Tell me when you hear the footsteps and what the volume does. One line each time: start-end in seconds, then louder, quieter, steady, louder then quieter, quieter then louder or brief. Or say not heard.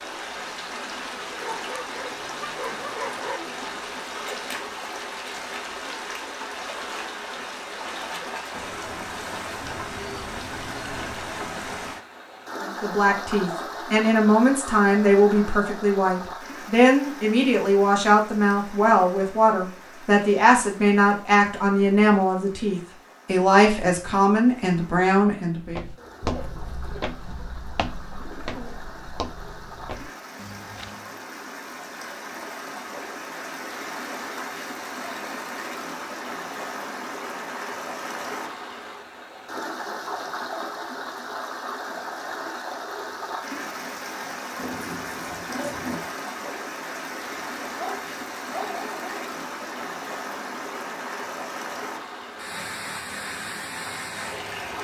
25.6-31.1 quieter.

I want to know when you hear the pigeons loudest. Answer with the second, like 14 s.
46 s.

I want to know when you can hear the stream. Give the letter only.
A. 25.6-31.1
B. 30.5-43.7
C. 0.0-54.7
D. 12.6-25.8
C.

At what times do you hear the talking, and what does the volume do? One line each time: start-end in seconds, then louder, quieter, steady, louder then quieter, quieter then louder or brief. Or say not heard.
12.6-25.8 steady.